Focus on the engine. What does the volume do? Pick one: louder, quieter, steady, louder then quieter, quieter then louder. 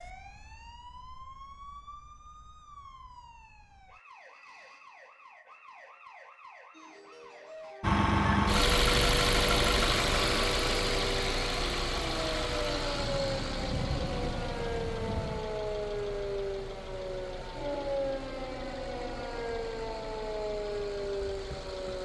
quieter.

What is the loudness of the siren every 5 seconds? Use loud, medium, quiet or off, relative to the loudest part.
quiet, quiet, loud, loud, loud.